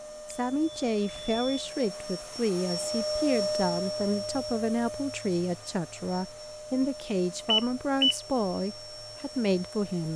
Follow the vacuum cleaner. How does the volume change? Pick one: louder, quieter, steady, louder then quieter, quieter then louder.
louder then quieter.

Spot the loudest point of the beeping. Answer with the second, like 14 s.
8 s.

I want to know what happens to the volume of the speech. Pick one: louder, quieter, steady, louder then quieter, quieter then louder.
steady.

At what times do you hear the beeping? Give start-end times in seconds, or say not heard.
0.3-1.8, 7.5-8.2.